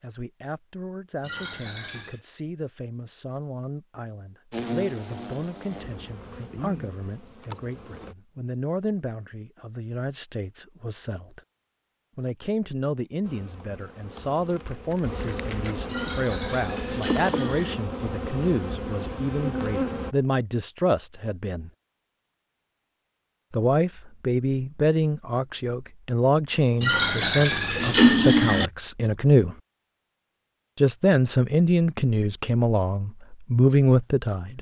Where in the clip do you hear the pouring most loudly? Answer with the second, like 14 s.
28 s.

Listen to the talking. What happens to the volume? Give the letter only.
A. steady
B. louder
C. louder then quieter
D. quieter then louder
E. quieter
B.